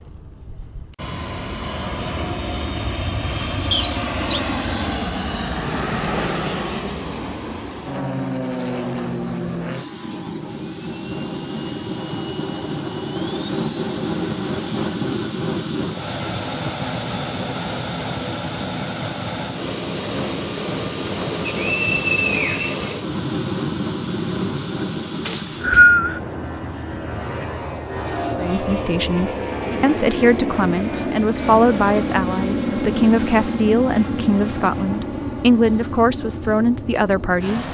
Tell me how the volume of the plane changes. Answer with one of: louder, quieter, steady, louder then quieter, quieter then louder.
steady.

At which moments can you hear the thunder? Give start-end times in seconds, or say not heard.
not heard.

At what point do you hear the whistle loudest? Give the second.
26 s.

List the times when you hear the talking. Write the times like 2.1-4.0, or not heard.
28.4-37.6.